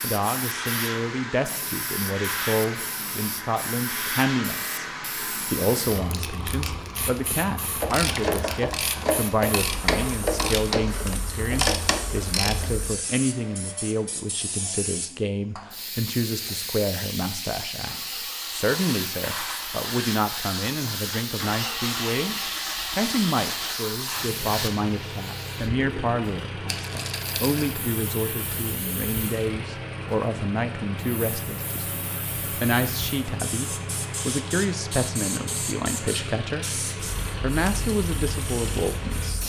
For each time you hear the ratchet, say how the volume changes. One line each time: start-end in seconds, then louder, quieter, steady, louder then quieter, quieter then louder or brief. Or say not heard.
7.7-12.8 steady.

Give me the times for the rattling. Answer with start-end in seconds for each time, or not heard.
26.6-27.8.